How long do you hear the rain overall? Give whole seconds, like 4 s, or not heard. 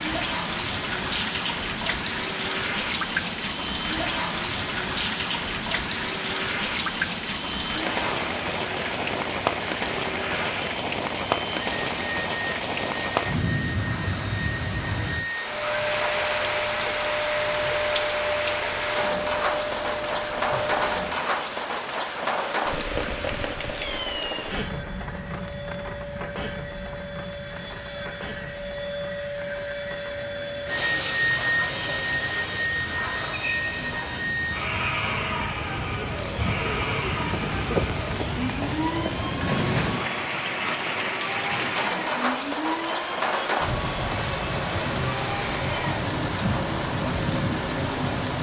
48 s.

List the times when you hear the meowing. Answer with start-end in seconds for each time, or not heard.
23.8-24.4.